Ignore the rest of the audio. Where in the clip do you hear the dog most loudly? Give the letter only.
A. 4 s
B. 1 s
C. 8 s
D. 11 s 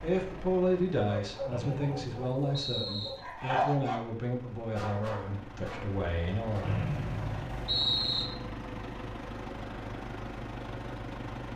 A.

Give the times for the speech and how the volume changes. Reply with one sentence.
You can hear the speech from 0.0 to 6.8 s, getting quieter.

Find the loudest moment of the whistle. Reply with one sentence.
The loudest moment of the whistle is at 8 seconds.